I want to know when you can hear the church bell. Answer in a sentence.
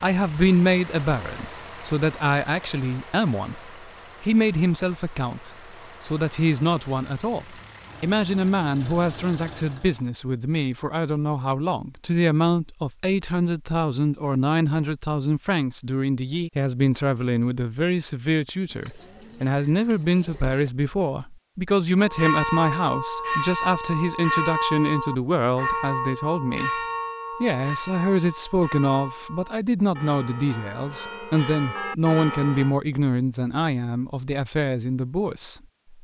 The church bell can be heard from 21.9 to 32.8 s.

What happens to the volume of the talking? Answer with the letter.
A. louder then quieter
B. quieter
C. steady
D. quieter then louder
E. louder
C.